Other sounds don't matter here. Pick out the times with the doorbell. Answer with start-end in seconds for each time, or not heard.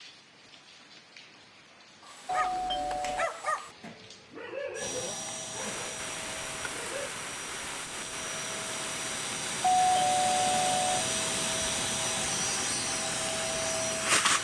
2.2-3.3, 9.8-10.9.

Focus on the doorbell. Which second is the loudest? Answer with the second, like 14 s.
10 s.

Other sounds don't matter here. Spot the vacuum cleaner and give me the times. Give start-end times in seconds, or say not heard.
4.8-14.3.